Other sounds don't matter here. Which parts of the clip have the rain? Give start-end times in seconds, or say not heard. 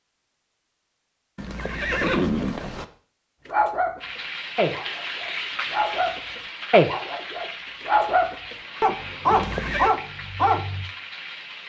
4.0-11.6.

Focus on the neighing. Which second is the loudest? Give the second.
2 s.